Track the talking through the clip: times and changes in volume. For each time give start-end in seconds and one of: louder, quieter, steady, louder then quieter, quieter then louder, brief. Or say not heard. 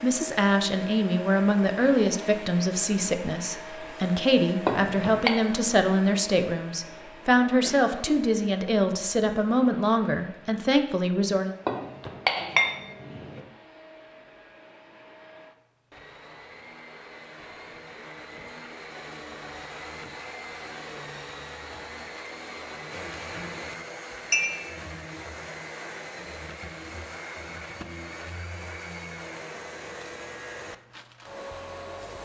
0.0-11.5 steady.